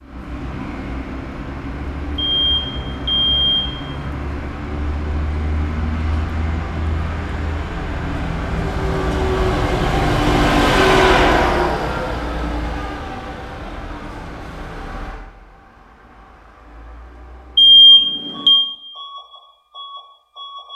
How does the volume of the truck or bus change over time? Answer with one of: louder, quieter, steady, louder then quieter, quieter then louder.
louder then quieter.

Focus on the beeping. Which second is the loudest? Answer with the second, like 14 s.
18 s.